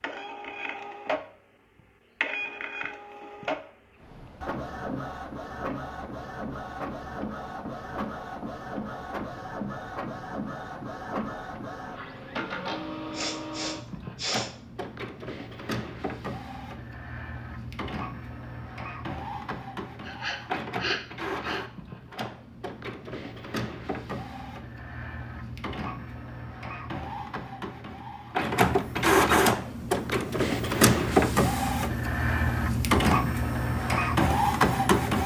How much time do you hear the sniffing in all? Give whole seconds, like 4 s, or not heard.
3 s.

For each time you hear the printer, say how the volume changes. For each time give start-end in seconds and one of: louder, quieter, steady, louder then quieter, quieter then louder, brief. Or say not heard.
0.0-35.2 louder.